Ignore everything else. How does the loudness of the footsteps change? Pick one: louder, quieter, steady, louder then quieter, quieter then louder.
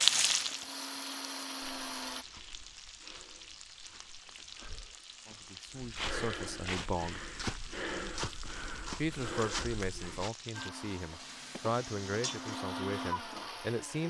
louder.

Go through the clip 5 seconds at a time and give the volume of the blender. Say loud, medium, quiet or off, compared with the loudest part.
loud, off, loud.